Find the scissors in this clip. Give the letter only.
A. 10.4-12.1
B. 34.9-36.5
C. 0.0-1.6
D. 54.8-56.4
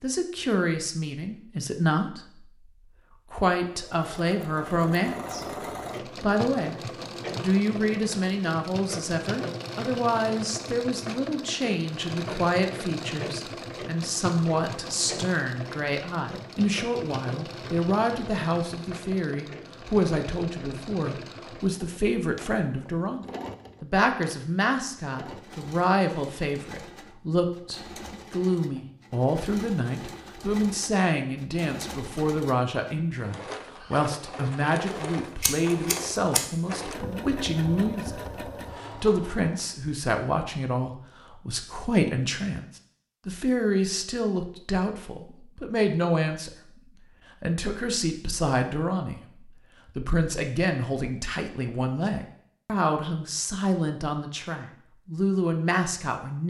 B.